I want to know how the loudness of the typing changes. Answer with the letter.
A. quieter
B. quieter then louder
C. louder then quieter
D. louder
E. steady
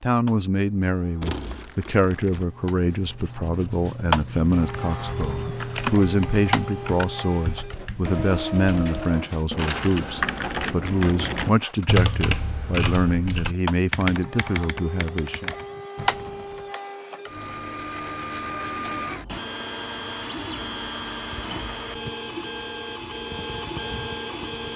C.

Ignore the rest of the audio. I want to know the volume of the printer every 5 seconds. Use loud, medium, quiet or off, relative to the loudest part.
loud, loud, medium, loud, loud.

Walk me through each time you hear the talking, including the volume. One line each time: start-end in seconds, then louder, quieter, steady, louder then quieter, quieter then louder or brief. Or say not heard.
0.0-15.5 steady.